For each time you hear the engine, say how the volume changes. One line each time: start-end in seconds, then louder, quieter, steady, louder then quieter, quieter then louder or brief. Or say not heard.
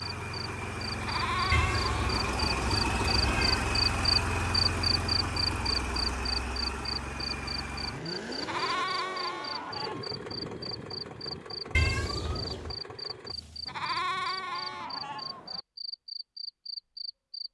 0.0-13.8 quieter.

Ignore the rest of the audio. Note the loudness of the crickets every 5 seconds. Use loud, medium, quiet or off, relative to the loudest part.
loud, loud, medium, medium.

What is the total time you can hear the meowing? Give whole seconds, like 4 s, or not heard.
3 s.